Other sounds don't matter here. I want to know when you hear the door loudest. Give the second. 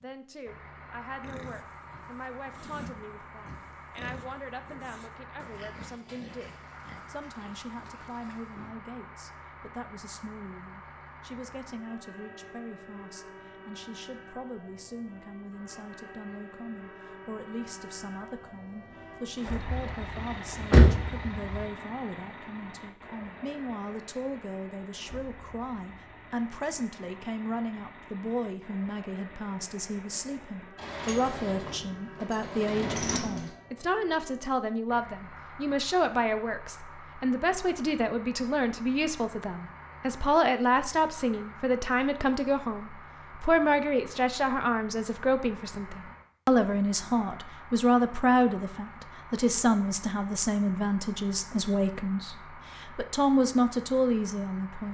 21 s.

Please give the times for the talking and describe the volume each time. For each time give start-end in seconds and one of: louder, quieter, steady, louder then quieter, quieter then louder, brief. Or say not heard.
0.0-54.8 louder.